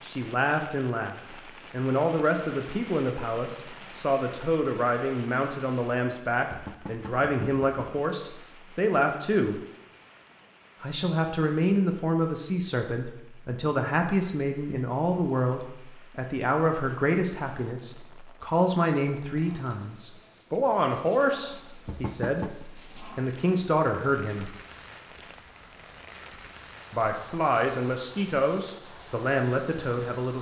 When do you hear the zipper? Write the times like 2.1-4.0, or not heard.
not heard.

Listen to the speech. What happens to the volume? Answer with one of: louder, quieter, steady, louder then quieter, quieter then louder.
steady.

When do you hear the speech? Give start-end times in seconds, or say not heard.
0.0-9.6, 10.8-24.5, 26.9-30.3.